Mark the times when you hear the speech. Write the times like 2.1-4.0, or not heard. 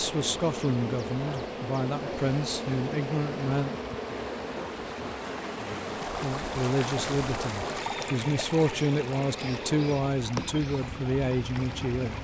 0.0-3.7, 6.0-12.2.